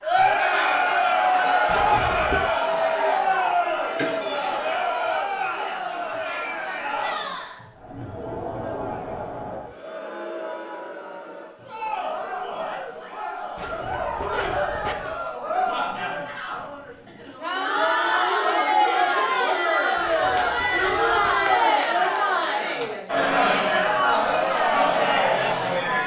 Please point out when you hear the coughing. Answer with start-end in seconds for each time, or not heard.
4.0-4.7.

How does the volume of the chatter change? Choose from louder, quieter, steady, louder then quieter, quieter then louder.
quieter then louder.